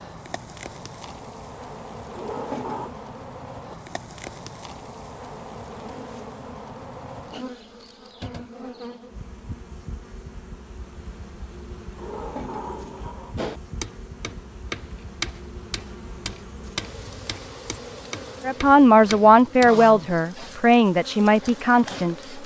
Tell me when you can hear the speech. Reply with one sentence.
You can hear the speech from 18.4 to 22.1 s.